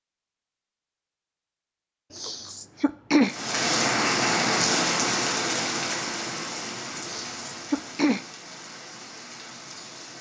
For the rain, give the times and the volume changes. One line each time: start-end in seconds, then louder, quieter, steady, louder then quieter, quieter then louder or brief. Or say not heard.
3.2-10.1 quieter.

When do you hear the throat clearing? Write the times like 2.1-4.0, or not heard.
2.1-3.4, 7.0-8.2.